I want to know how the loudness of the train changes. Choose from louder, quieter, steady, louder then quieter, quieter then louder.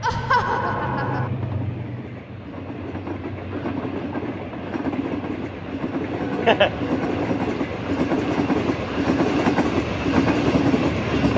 louder.